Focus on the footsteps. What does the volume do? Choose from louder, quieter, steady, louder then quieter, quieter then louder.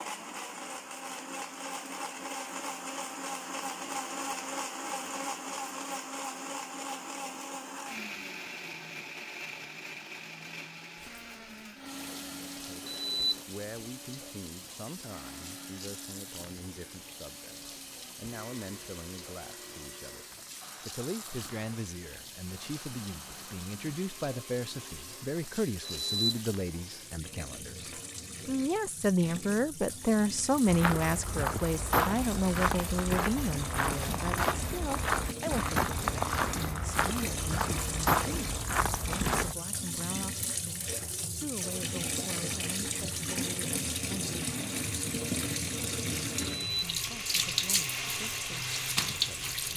steady.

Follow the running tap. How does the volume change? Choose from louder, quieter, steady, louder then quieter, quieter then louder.
louder.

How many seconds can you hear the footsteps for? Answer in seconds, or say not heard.
9 s.